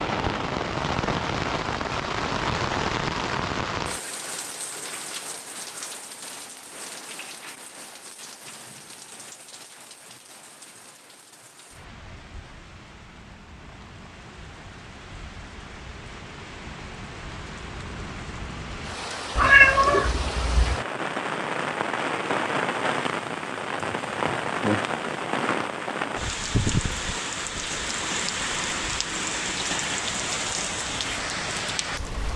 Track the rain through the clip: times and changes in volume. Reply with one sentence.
The rain can be heard from 0.0 to 32.3 s, getting quieter then louder.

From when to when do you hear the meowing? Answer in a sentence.
The meowing can be heard from 19.4 to 20.8 s.